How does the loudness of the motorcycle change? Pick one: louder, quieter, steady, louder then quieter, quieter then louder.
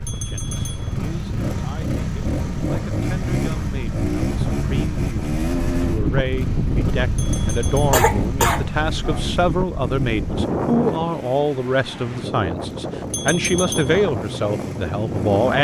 quieter.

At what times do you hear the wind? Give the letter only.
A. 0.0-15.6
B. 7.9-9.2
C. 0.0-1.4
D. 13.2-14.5
A.